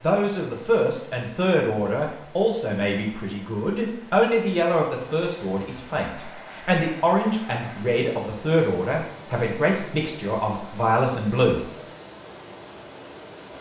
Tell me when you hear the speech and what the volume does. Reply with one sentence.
The speech can be heard from 0.0 to 11.7 s, at a steady volume.